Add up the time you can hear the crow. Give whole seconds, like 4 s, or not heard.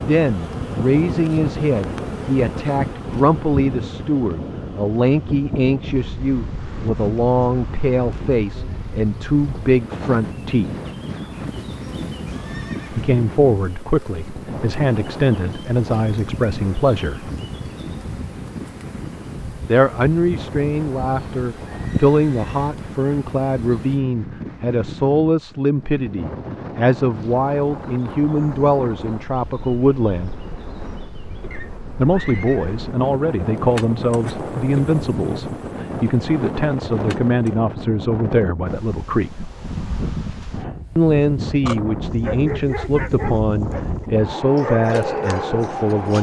not heard.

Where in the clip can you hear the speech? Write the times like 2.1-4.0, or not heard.
0.1-10.8, 12.9-17.3, 19.6-30.3, 31.9-39.5, 41.0-46.1.